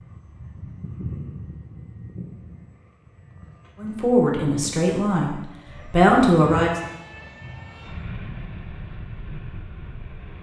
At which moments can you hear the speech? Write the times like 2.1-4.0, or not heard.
3.8-6.7.